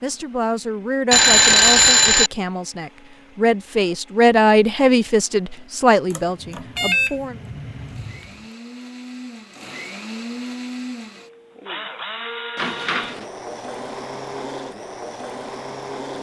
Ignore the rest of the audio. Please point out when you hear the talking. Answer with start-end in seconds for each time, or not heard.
0.0-7.4.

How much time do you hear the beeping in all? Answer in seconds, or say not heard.
4 s.